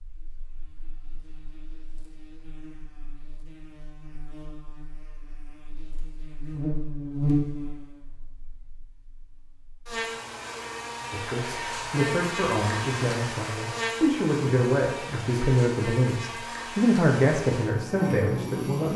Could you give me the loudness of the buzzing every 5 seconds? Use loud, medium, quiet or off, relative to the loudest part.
quiet, loud, loud, loud.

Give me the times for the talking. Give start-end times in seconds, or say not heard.
11.1-18.9.